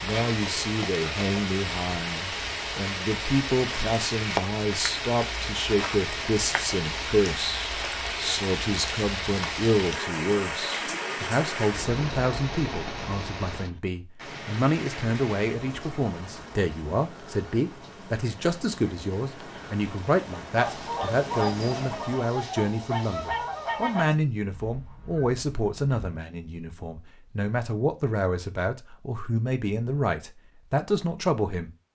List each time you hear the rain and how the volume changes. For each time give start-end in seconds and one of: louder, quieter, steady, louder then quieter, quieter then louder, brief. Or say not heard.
0.0-22.2 quieter.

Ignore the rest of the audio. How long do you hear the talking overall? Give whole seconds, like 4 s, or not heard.
32 s.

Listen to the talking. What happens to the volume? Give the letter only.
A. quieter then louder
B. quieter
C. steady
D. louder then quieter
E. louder
C.